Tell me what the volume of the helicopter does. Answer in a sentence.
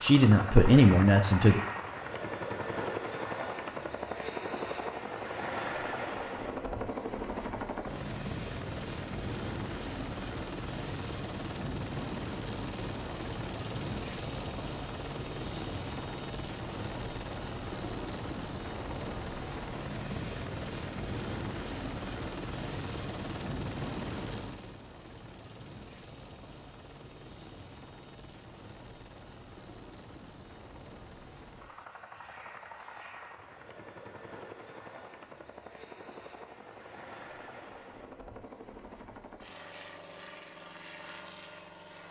The loudness of the helicopter goes down.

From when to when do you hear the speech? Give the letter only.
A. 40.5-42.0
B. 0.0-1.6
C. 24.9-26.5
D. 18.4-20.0
B.